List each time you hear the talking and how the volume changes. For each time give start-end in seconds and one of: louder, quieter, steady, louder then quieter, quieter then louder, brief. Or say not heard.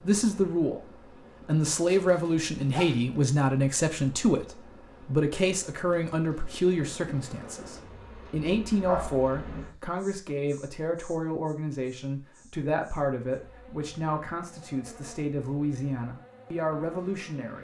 0.0-17.5 quieter.